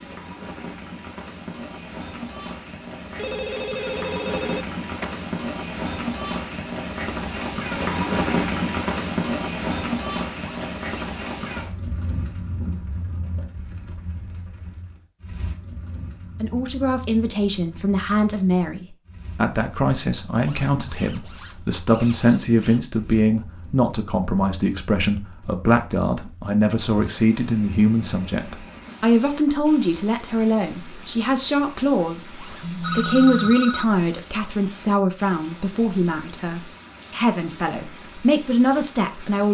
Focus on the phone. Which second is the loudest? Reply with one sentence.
The loudest moment of the phone is at 33 seconds.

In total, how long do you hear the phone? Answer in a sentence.
You can hear the phone for 3 seconds altogether.